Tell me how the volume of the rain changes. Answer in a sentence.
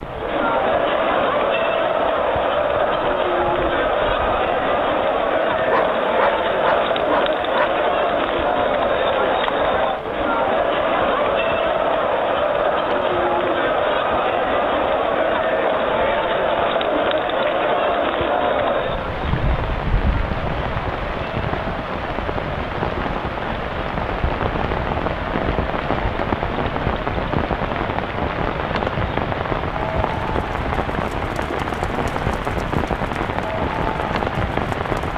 The volume of the rain goes up.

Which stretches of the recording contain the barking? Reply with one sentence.
The barking can be heard from 5.7 to 7.7 s.